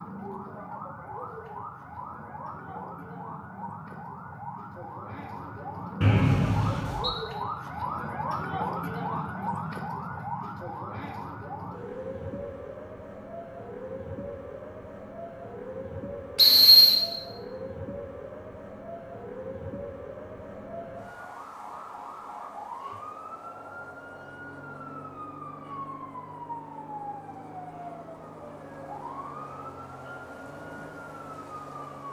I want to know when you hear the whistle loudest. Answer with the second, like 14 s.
17 s.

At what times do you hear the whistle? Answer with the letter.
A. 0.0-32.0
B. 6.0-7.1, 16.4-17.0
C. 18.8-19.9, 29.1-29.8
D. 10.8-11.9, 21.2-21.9
B.